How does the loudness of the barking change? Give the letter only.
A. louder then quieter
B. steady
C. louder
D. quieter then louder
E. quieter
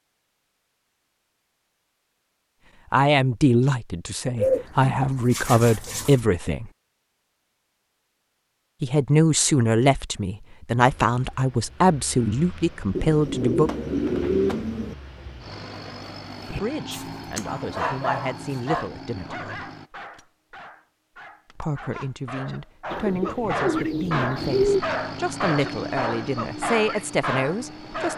D.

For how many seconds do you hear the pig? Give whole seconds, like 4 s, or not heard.
not heard.